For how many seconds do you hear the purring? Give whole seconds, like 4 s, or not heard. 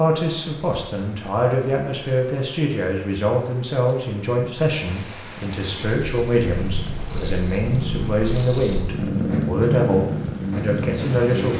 6 s.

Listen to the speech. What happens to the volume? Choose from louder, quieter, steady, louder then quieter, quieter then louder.
steady.